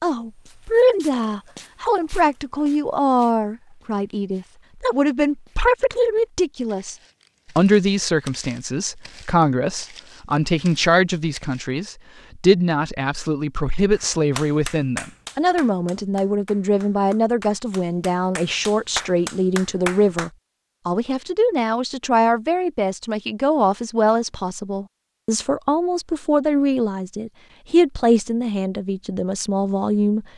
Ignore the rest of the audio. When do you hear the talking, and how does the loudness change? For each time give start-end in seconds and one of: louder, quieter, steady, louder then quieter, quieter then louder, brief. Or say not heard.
0.0-7.0 steady
7.5-30.2 steady.